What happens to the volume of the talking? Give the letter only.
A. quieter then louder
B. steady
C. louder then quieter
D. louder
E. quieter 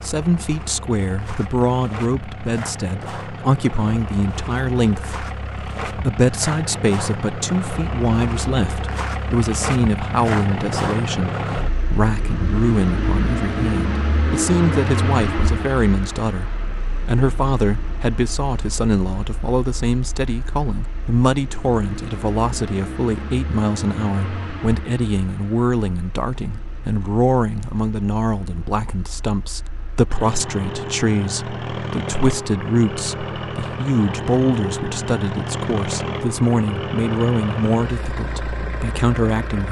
B.